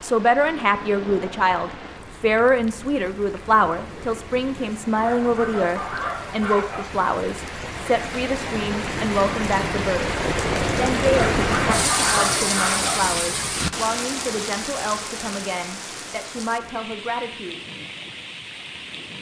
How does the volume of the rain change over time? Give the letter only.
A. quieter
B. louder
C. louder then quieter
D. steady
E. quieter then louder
C.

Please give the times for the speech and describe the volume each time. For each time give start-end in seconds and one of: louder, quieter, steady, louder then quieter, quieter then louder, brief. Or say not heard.
0.0-17.6 quieter.